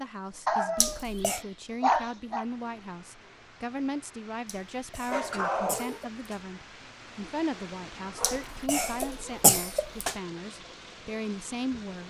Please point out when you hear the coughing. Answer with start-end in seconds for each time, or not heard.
0.8-1.4, 4.5-6.4, 8.2-10.2.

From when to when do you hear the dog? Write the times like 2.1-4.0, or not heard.
0.5-2.5, 5.1-6.0, 8.2-9.3.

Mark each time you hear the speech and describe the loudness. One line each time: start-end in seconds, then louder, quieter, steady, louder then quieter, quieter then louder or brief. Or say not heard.
0.0-12.0 steady.